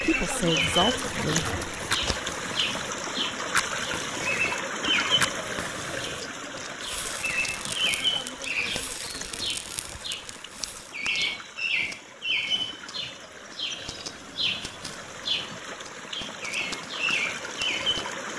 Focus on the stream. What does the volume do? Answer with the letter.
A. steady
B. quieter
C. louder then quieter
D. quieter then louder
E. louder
D.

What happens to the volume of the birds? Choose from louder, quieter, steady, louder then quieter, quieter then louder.
steady.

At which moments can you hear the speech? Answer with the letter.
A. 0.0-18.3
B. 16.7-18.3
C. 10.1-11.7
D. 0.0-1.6
D.